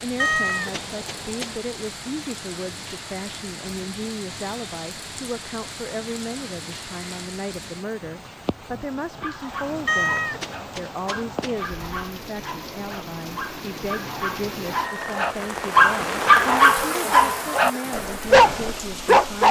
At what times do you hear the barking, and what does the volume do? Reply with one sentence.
The barking can be heard from 9.2 to 19.4 s, getting louder.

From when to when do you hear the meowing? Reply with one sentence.
The meowing can be heard from 0.2 to 1.6 s and from 9.8 to 11.7 s.